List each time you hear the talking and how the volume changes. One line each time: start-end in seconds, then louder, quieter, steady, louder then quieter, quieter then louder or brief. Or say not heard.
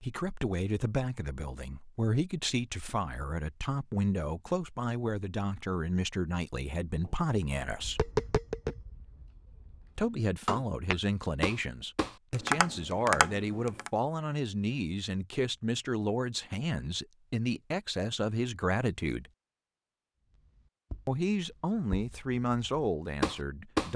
0.0-8.1 steady
9.9-19.3 steady
21.1-23.9 brief.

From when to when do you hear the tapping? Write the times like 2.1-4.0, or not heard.
7.0-13.9, 20.4-23.9.